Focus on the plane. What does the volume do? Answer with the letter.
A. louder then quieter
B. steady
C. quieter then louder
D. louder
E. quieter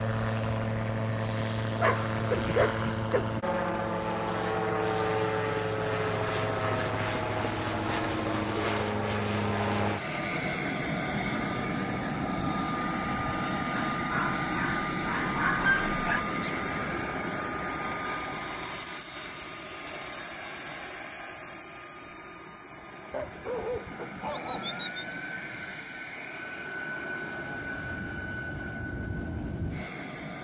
E.